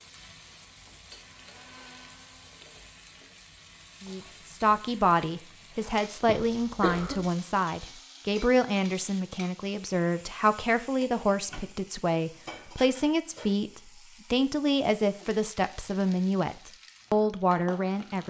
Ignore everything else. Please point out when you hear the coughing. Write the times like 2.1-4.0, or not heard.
6.1-7.2.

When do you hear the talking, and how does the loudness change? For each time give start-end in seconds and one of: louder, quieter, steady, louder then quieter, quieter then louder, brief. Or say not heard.
4.0-18.2 steady.